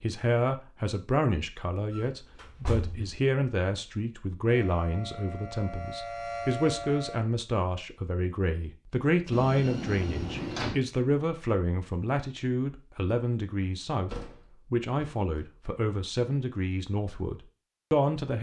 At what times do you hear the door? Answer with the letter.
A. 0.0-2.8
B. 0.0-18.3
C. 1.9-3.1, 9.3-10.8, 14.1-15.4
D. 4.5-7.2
C.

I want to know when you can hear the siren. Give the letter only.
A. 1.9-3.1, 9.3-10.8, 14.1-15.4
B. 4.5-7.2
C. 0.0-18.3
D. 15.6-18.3
B.